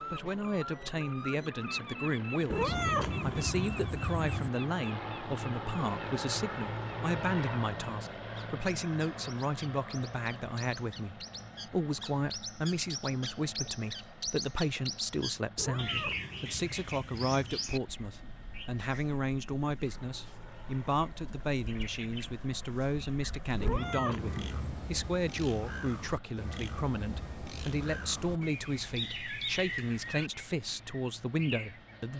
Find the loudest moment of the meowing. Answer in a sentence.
The volume of the meowing peaks at 3 seconds.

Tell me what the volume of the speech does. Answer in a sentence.
The loudness of the speech stays about the same.